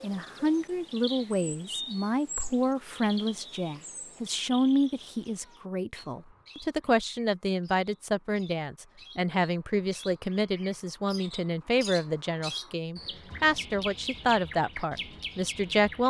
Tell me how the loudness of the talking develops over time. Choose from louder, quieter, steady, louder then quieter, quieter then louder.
steady.